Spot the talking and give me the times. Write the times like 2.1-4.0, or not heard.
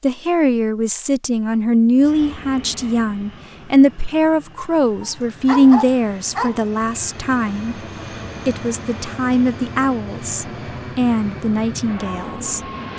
0.0-7.8, 8.4-12.9.